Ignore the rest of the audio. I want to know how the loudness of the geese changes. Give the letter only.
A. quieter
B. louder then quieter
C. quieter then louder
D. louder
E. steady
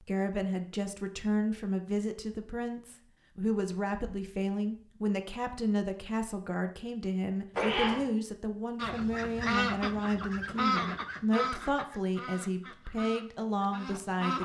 A.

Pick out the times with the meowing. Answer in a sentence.
The meowing can be heard from 7.5 to 8.1 s.